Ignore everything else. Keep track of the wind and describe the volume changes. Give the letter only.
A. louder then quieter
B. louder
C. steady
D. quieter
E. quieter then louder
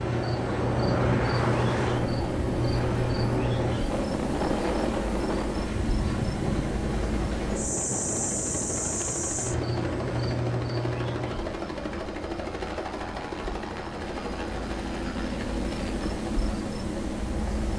D.